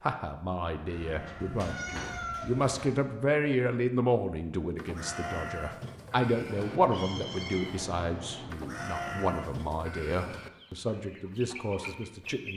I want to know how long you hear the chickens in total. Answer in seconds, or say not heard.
2 s.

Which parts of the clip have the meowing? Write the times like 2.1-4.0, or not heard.
0.9-2.9, 6.5-8.5.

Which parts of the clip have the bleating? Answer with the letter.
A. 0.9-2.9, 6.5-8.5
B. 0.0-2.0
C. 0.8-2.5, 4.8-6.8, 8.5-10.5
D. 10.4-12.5
C.